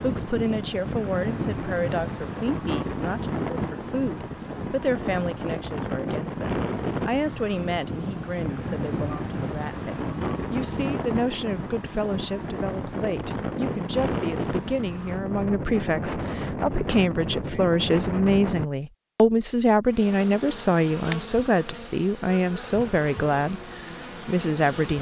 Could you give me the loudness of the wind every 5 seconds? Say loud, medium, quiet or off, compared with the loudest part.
loud, loud, loud, loud, off.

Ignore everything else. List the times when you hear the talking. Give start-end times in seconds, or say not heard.
0.0-24.9.